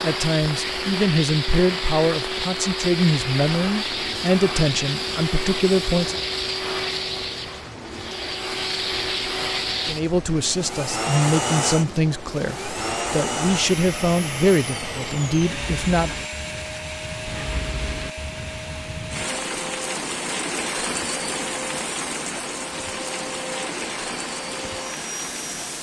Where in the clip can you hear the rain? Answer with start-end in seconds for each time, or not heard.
0.0-25.7.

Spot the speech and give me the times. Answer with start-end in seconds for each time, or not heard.
0.0-6.2, 9.8-16.1.